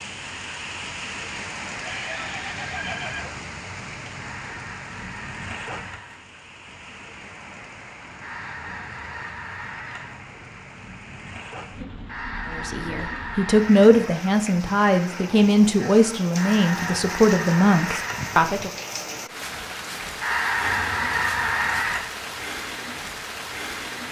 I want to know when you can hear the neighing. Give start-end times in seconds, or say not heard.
1.8-3.4.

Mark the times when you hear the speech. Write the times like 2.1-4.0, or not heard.
12.5-18.7.